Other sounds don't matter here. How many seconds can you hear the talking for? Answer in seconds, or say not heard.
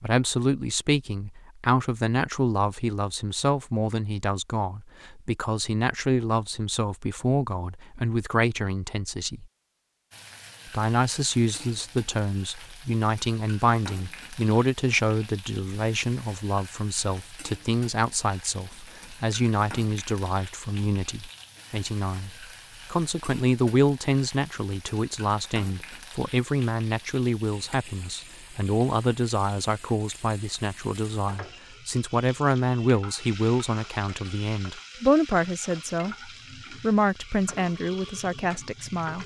38 s.